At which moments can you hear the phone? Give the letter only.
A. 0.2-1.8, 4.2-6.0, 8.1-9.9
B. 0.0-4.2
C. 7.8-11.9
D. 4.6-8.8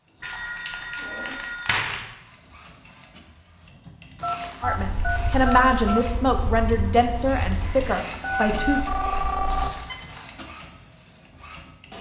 A.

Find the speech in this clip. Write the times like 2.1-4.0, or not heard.
4.6-8.8.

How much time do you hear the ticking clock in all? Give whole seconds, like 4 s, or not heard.
not heard.